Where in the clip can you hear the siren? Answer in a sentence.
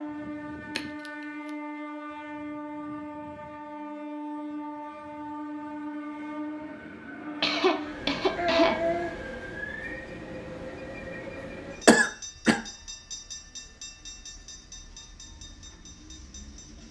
You can't hear the siren here.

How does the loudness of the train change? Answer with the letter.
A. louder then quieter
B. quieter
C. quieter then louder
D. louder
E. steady
B.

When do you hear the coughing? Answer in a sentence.
You can hear the coughing from 0.8 to 1.5 s, from 7.4 to 9.2 s and from 11.8 to 12.6 s.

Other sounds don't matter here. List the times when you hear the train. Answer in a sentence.
You can hear the train from 0.0 to 16.8 s.